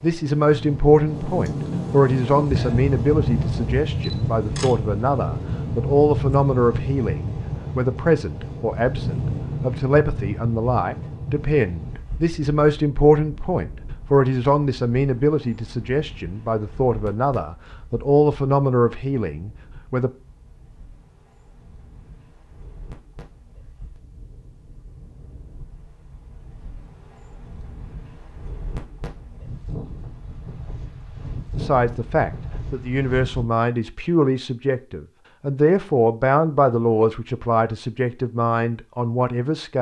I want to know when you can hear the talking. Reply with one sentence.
You can hear the talking from 0.0 to 20.1 s and from 31.6 to 39.7 s.